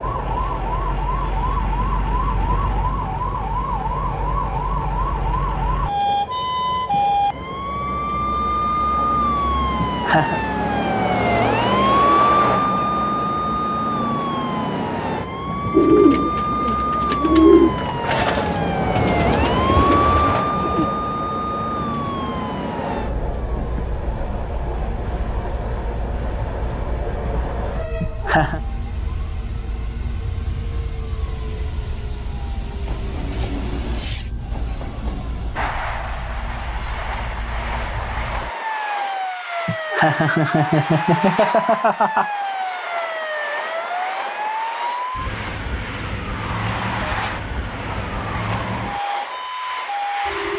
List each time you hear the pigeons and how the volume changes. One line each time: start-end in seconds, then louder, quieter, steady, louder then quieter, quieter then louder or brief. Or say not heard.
15.7-20.9 louder then quieter.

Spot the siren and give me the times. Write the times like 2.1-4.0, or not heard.
0.0-50.5.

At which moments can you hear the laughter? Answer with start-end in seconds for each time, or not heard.
9.8-10.4, 28.0-28.6, 39.6-42.3.